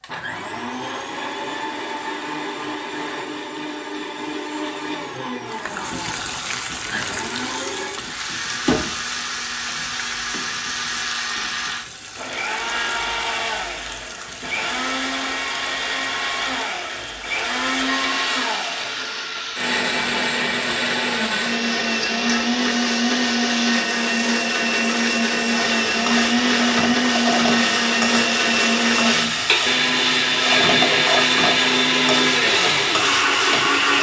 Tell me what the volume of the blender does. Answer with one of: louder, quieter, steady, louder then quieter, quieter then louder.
louder.